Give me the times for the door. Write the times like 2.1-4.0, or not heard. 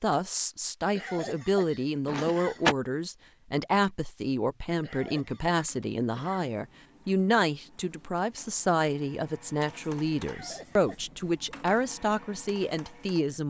2.0-2.8.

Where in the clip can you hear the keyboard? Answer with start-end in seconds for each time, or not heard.
not heard.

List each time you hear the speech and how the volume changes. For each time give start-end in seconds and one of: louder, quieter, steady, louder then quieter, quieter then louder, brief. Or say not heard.
0.0-13.4 steady.